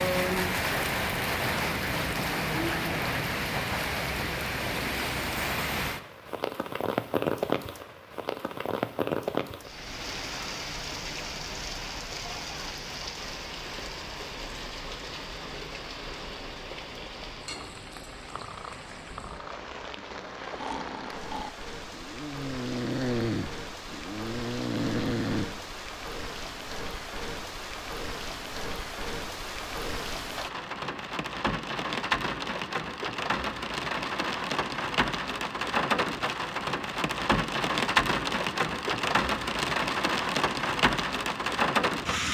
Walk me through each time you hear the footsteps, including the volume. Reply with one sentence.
You can't hear the footsteps here.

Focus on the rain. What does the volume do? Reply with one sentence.
The loudness of the rain goes down, then up.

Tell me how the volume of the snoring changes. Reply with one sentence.
The volume of the snoring goes up.